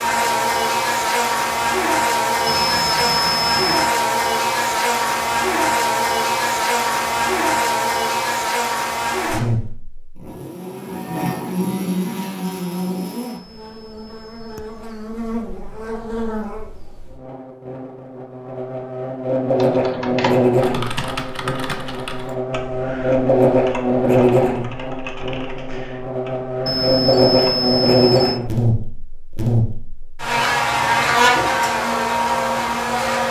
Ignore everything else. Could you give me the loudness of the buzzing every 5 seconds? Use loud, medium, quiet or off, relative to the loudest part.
loud, loud, medium, medium, loud, loud, loud.